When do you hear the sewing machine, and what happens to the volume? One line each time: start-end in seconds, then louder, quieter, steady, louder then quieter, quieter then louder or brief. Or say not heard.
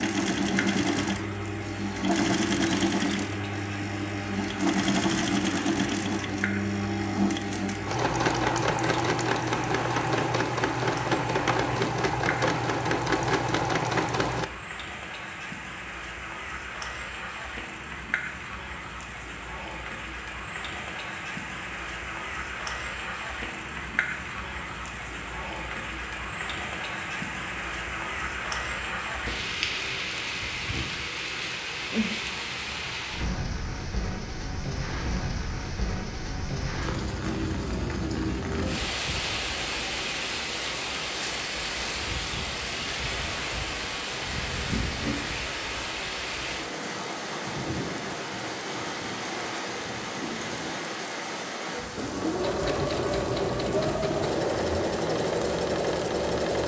0.0-14.5 steady
52.0-56.6 steady.